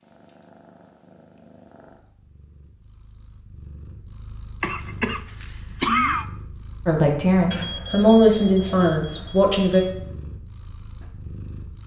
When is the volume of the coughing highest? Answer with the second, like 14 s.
6 s.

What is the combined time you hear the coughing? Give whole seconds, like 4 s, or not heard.
2 s.